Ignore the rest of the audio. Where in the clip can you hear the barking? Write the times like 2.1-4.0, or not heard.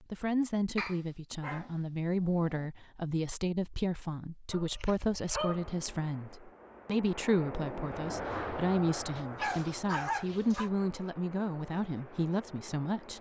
0.8-2.5, 4.5-5.7, 9.2-10.7.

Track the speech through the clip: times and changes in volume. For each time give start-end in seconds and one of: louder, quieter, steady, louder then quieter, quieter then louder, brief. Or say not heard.
0.1-13.1 steady.